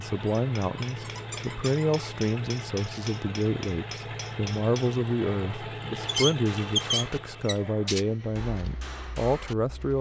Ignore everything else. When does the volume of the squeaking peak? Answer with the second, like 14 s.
7 s.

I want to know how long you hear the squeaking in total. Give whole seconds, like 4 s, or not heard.
4 s.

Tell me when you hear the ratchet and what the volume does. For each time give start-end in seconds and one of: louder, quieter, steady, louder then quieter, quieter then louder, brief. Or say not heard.
not heard.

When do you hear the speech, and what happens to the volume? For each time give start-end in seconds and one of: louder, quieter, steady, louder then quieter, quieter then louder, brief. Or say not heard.
0.0-9.9 steady.